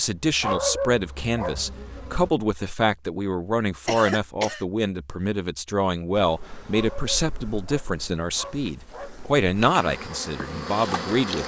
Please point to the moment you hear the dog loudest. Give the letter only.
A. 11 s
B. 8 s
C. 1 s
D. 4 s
C.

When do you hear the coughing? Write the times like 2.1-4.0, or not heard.
3.9-4.7.